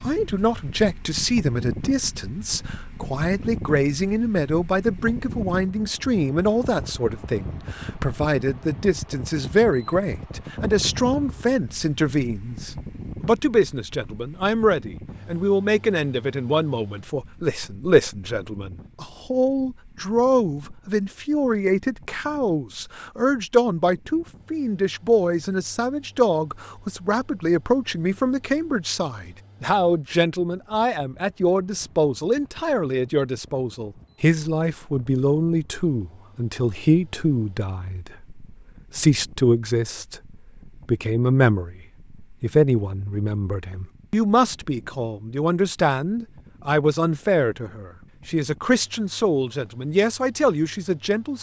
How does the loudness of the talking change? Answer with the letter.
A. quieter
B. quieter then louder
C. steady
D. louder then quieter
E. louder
C.